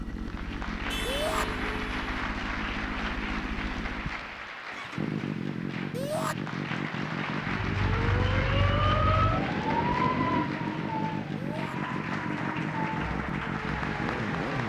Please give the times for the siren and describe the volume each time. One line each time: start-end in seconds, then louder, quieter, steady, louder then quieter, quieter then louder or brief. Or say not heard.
7.5-14.5 quieter.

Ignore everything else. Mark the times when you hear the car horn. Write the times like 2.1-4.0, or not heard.
0.9-2.0.